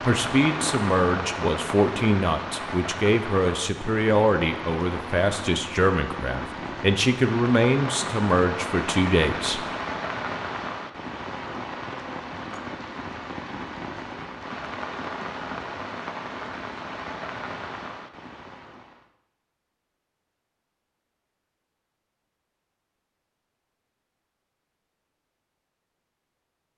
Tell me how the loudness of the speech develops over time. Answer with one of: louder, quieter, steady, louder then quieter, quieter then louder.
steady.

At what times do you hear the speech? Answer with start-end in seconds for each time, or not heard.
0.1-9.7.